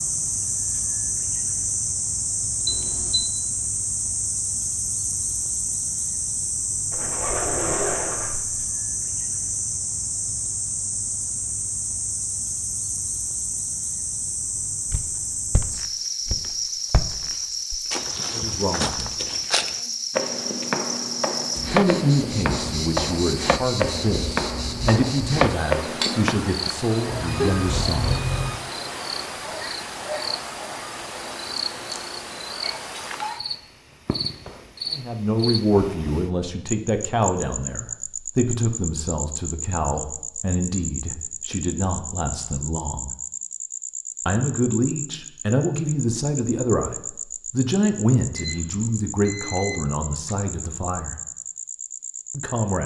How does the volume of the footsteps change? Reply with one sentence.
The loudness of the footsteps goes up.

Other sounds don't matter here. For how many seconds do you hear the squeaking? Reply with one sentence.
You can hear the squeaking for 2 seconds altogether.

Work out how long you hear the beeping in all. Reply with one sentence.
You can hear the beeping for 4 seconds altogether.